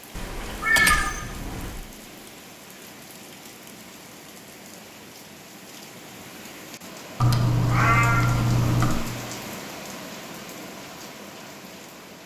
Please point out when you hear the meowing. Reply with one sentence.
You can hear the meowing from 0.1 to 1.8 s and from 7.2 to 9.1 s.